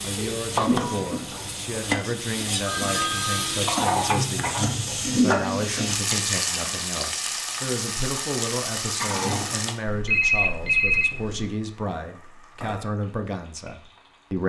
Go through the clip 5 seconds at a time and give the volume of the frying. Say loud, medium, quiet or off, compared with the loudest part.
loud, loud, quiet.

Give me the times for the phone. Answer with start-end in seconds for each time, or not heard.
2.6-4.0, 9.8-11.4.